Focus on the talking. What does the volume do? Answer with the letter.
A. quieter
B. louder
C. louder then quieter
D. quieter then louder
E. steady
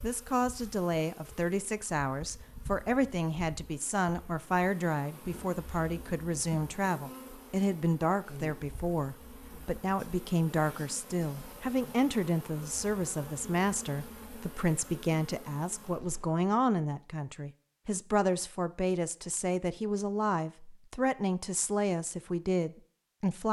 E.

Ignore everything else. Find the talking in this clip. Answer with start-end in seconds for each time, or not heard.
0.0-23.4.